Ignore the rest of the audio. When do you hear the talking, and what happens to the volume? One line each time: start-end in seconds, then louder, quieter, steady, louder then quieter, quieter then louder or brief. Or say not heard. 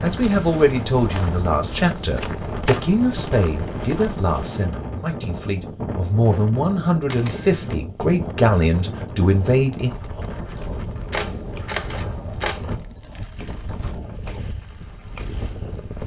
0.0-9.9 quieter then louder.